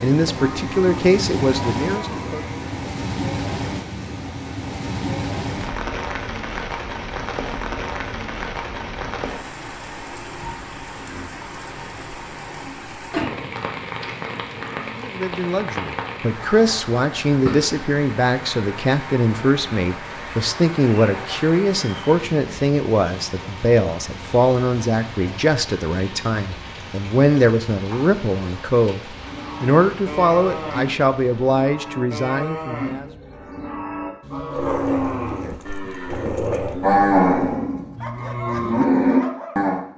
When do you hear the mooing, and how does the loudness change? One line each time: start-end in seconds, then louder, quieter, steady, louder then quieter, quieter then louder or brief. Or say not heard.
0.0-3.0 brief
29.1-39.9 louder.